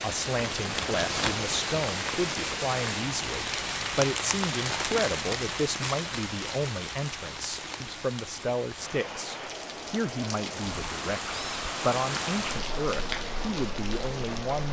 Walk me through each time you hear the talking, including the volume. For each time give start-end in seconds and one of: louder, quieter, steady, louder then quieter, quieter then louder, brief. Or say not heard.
0.0-14.6 steady.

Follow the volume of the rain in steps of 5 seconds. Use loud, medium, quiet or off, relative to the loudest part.
loud, medium, loud.